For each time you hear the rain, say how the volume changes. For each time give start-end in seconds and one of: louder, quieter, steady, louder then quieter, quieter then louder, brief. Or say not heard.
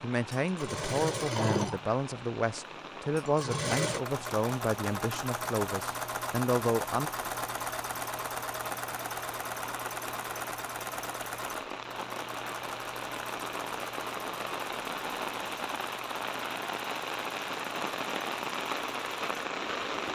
0.0-20.1 louder.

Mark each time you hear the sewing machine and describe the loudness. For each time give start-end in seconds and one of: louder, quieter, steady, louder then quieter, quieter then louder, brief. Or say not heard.
0.2-20.1 quieter.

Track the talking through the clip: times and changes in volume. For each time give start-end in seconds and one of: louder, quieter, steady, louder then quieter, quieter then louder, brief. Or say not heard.
0.0-7.1 steady.